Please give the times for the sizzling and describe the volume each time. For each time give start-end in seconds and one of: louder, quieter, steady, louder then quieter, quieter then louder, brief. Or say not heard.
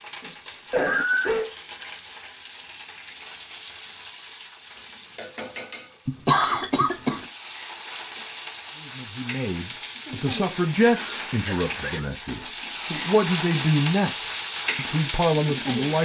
0.0-16.0 louder.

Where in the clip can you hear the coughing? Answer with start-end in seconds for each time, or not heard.
0.2-1.5, 6.0-7.2, 10.9-12.1.